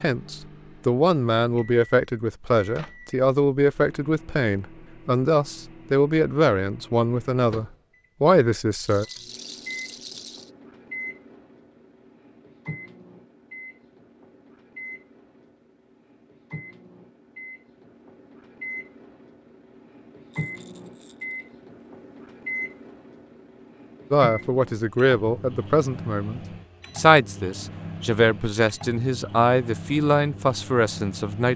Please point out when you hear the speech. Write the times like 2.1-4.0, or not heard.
0.0-9.1, 24.1-31.5.